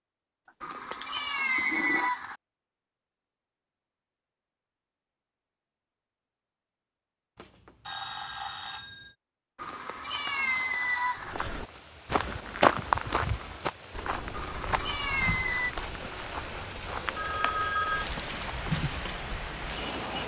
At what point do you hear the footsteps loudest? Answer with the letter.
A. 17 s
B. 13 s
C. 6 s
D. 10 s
B.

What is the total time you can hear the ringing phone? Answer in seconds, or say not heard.
4 s.